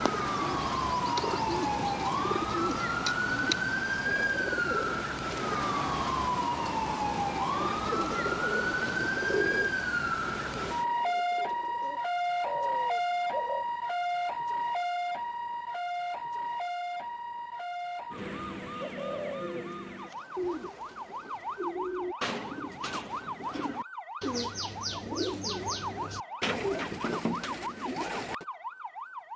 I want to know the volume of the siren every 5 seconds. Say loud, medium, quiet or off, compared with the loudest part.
loud, loud, loud, medium, medium, medium.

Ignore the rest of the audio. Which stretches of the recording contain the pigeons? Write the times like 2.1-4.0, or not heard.
0.0-5.6, 7.5-13.7, 18.7-28.4.